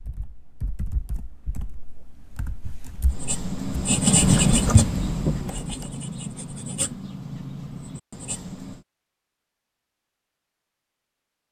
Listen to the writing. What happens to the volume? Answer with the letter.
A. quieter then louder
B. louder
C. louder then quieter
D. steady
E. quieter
E.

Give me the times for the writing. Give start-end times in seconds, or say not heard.
3.0-8.8.